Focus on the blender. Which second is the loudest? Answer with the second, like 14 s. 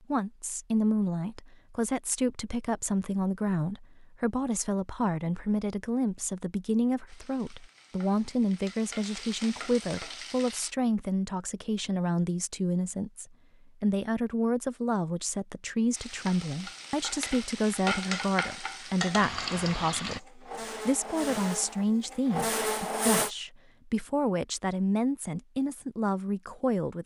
23 s.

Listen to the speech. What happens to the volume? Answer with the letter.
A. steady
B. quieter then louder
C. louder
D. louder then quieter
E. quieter
A.